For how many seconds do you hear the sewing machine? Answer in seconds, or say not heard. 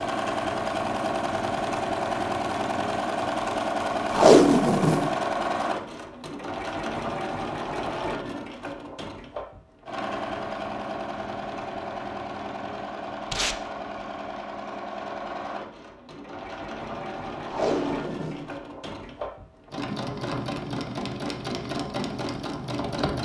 23 s.